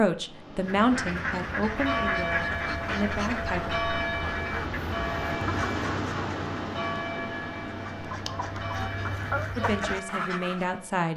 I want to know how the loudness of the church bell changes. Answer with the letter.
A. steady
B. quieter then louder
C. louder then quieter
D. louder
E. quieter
E.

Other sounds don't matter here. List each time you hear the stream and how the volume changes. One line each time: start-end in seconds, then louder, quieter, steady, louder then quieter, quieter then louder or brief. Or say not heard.
0.1-9.5 louder then quieter.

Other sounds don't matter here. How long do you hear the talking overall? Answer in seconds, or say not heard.
5 s.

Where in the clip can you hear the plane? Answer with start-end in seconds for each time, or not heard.
not heard.